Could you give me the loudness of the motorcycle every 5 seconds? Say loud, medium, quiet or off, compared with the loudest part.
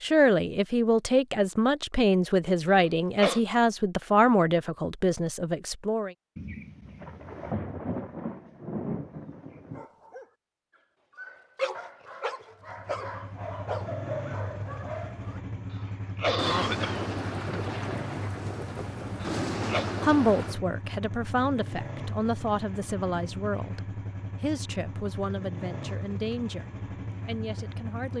off, off, loud, loud, loud, loud.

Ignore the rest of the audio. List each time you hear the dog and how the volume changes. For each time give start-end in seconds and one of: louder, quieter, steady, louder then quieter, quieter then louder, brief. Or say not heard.
9.7-15.4 louder.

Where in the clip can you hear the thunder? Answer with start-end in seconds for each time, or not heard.
6.3-9.8, 16.4-20.6.